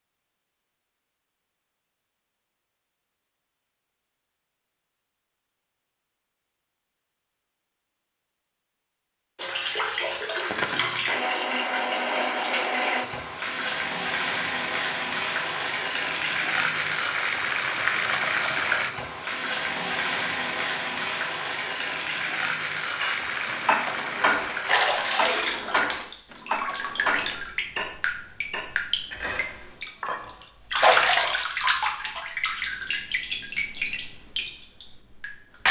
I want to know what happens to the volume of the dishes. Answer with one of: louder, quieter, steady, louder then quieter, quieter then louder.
quieter.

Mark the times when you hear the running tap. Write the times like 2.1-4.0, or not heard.
9.3-35.6.